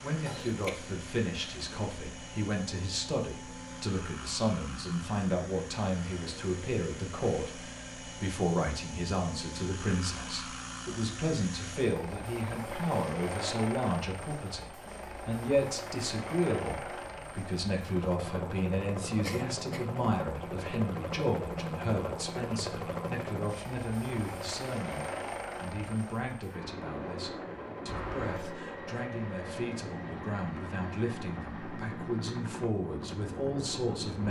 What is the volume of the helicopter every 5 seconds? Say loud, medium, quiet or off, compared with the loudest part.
medium, medium, loud, loud, loud, loud, loud.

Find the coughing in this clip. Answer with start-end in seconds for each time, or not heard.
0.2-0.8, 19.2-19.9, 27.9-28.6.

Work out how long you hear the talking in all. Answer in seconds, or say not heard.
34 s.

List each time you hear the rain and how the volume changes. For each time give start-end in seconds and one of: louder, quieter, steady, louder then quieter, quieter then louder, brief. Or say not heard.
not heard.